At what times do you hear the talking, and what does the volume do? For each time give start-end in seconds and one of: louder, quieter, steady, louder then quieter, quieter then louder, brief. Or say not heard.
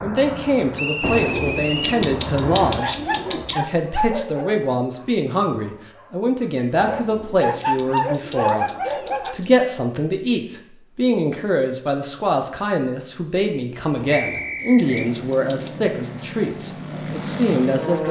0.0-18.0 steady.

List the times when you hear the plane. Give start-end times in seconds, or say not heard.
0.0-2.9, 14.8-18.0.